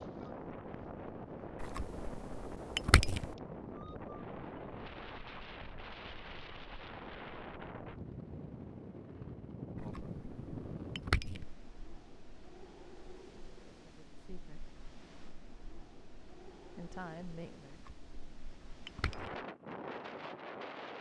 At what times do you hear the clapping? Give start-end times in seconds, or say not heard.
not heard.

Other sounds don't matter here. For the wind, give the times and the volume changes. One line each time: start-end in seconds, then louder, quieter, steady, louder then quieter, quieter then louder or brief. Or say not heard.
0.0-20.9 quieter then louder.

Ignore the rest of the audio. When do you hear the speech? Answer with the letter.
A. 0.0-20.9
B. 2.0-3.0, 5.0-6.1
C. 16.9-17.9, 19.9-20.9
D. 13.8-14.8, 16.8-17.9
D.